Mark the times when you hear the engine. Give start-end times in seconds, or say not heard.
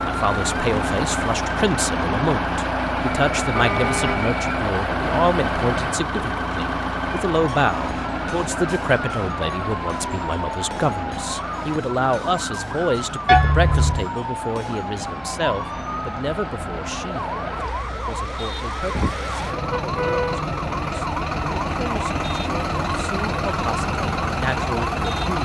0.0-25.4.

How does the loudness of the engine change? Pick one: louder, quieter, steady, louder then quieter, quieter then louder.
quieter then louder.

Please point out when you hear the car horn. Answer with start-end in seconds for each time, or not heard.
3.5-4.2, 13.2-14.1, 18.9-20.4.